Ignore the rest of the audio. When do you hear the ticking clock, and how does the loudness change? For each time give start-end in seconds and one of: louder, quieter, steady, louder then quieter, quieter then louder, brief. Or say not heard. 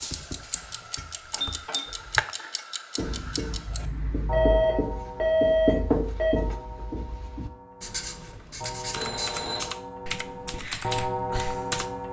0.0-12.0 quieter then louder.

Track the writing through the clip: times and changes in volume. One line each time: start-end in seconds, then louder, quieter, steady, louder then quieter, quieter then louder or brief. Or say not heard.
3.0-11.7 louder then quieter.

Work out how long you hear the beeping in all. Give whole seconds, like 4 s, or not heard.
3 s.